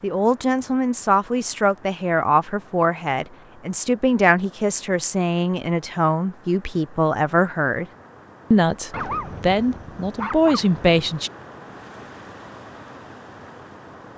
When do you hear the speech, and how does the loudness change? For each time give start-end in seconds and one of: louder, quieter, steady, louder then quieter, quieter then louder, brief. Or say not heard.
0.0-7.8 steady
8.5-11.3 brief.